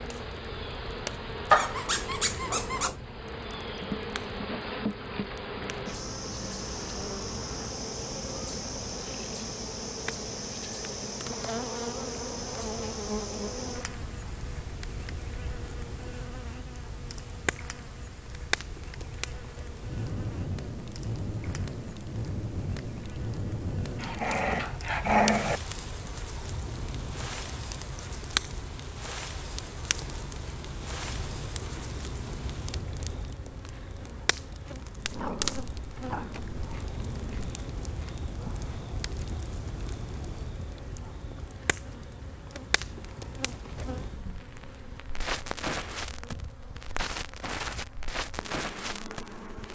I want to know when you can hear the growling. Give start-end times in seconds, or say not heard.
1.5-3.0, 24.0-25.6, 35.0-37.5.